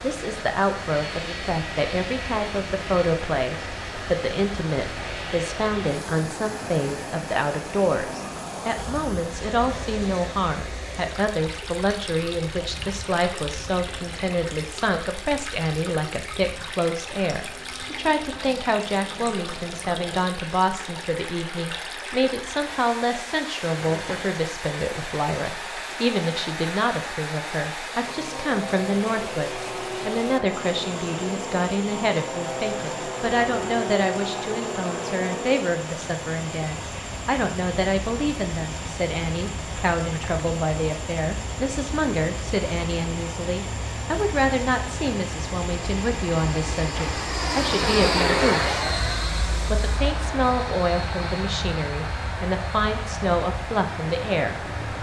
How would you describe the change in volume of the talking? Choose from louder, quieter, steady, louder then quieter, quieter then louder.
steady.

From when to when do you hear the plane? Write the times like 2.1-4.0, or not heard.
0.1-54.9.